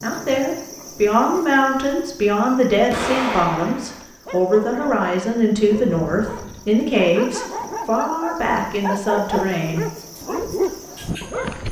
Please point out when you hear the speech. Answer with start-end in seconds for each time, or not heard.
0.0-9.8.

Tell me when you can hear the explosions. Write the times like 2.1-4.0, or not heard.
2.9-4.0.